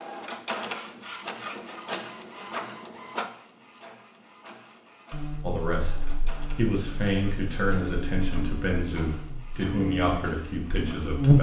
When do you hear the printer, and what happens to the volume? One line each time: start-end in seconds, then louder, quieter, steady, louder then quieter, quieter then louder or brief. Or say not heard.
0.0-11.1 quieter.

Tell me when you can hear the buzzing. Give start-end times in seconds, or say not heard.
5.1-11.3.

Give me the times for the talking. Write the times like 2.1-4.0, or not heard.
5.4-11.3.